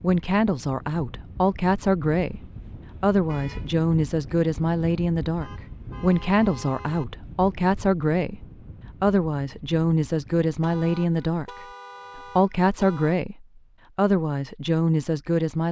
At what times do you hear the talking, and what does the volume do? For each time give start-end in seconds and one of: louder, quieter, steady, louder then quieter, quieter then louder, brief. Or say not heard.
0.0-15.6 steady.